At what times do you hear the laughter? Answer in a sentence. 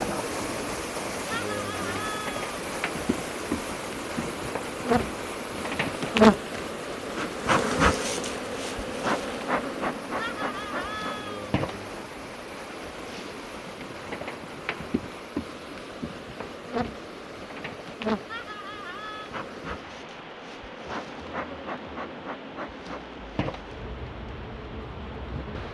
The laughter can be heard from 1.3 to 2.5 s, from 10.2 to 11.5 s and from 18.2 to 19.3 s.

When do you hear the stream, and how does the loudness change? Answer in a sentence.
The stream can be heard from 0.0 to 25.6 s, getting quieter.